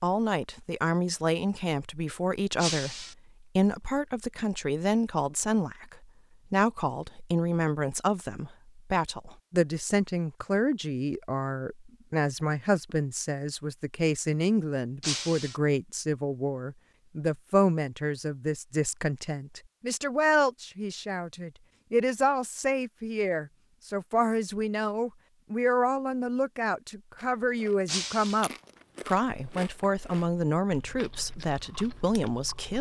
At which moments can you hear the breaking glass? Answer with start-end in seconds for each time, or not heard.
2.5-3.1, 15.0-15.6, 27.9-28.4.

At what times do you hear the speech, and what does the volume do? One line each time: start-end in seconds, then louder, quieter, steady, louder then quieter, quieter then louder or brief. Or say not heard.
0.0-32.7 steady.